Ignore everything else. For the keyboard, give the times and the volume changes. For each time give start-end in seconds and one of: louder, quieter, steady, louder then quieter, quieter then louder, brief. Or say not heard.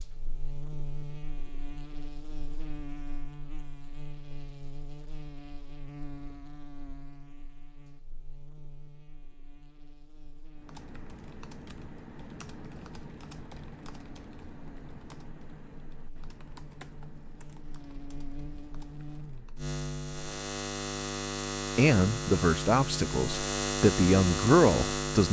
10.6-19.8 quieter.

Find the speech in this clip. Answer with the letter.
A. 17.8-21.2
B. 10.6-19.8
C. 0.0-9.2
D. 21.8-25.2
D.